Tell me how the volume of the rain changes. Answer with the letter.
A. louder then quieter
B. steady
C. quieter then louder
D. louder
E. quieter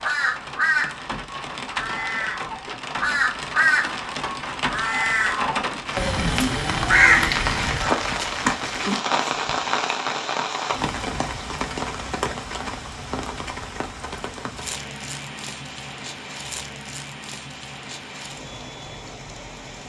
A.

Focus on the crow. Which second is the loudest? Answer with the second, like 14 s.
7 s.